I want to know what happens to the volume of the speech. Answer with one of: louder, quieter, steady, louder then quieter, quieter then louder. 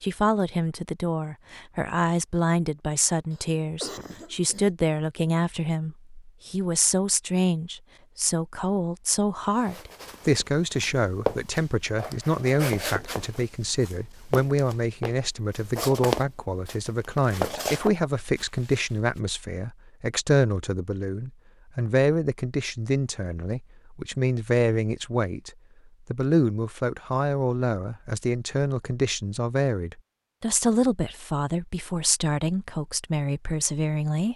steady.